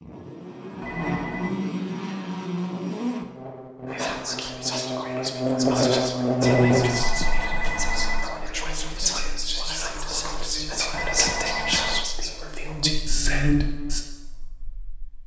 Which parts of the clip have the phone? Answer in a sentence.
The phone can be heard from 0.8 to 1.6 s, from 6.4 to 8.4 s and from 10.9 to 12.1 s.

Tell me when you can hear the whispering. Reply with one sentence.
You can hear the whispering from 3.9 to 14.1 s.